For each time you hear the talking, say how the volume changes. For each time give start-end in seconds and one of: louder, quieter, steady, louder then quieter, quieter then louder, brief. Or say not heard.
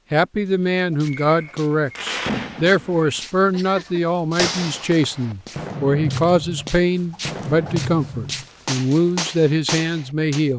0.1-10.5 steady.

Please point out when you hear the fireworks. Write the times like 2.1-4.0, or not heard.
1.1-10.4.